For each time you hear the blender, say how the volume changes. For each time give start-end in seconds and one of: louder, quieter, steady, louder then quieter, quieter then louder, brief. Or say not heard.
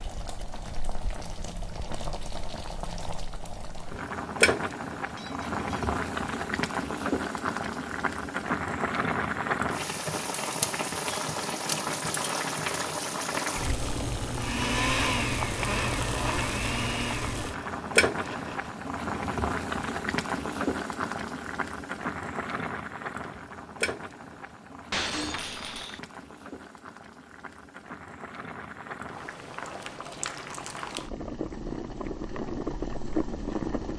14.3-18.8 quieter.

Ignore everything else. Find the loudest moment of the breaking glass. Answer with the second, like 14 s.
25 s.